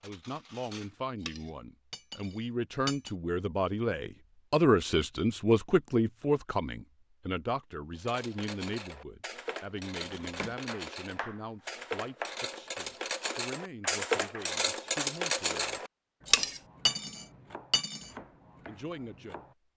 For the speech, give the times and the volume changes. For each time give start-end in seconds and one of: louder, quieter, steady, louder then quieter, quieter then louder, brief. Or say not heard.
0.0-15.8 louder then quieter
18.6-19.4 brief.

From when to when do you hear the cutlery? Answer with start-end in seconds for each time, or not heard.
0.0-3.1, 8.1-18.1.